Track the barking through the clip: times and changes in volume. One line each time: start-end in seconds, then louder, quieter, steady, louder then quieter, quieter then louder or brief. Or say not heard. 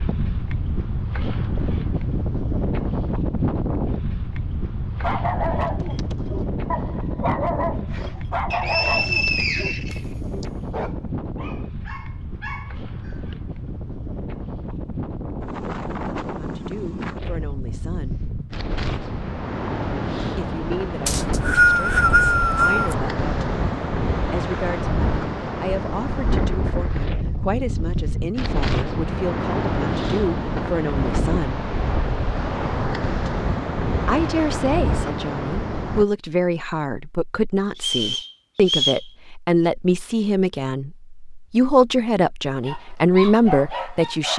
5.0-13.3 quieter
42.6-44.3 brief.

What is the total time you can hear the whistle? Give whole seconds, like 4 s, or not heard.
5 s.